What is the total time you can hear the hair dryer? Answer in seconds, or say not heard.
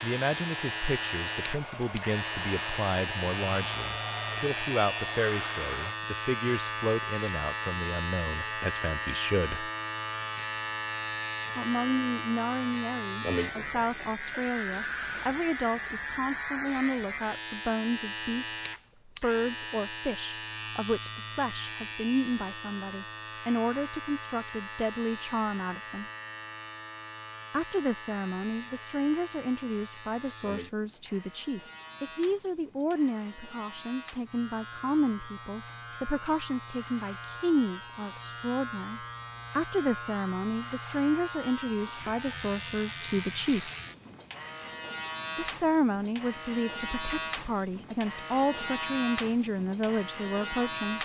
6 s.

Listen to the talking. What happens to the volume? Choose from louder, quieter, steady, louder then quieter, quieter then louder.
steady.